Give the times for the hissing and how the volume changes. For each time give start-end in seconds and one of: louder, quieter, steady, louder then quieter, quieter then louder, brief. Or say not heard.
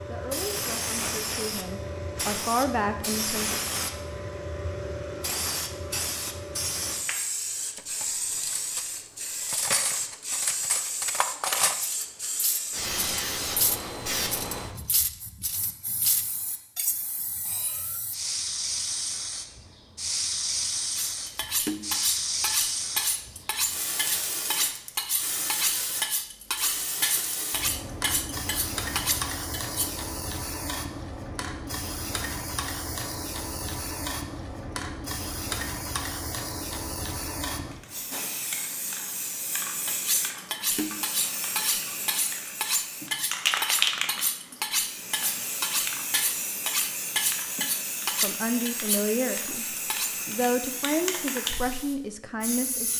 0.0-52.9 steady.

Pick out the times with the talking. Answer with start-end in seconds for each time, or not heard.
0.1-3.5, 48.2-52.9.